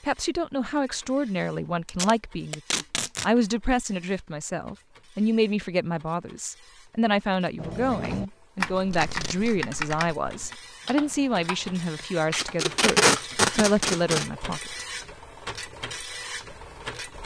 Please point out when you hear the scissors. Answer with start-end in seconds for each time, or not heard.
not heard.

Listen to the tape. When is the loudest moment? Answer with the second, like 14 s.
13 s.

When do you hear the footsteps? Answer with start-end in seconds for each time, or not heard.
not heard.